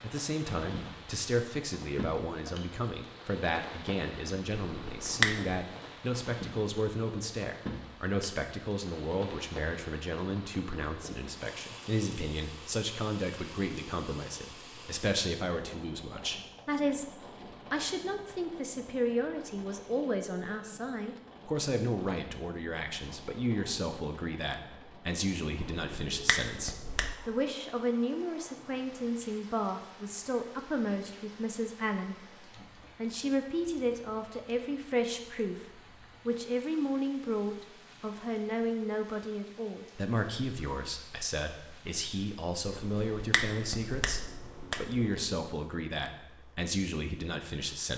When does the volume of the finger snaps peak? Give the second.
5 s.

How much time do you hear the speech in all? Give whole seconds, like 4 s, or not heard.
48 s.